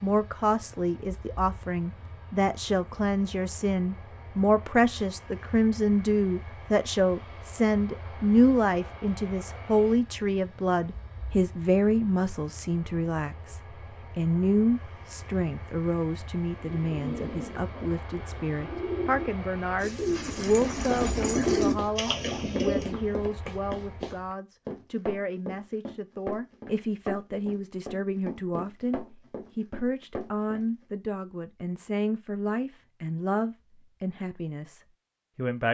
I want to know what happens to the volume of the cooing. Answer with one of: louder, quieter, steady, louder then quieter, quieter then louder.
louder.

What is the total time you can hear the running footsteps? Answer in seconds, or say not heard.
10 s.